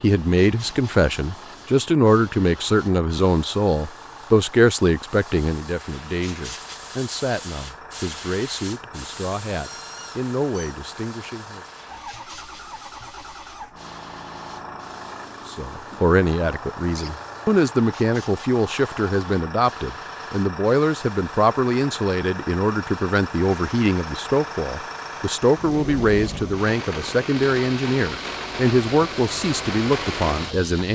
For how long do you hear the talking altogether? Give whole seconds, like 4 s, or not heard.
27 s.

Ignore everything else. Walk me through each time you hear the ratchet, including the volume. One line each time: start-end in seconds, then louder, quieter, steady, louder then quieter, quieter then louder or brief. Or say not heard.
not heard.